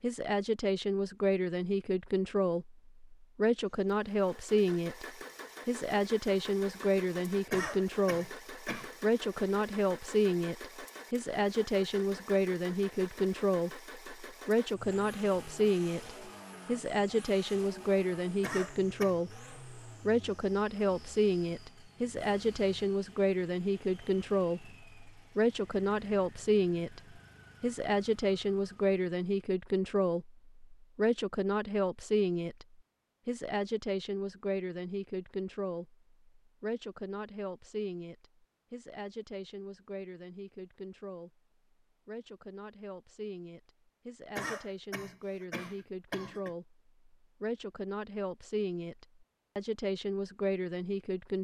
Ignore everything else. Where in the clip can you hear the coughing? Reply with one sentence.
You can hear the coughing from 7.5 to 8.9 s, from 18.4 to 19.2 s and from 44.4 to 46.5 s.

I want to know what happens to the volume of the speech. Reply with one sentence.
The volume of the speech goes down.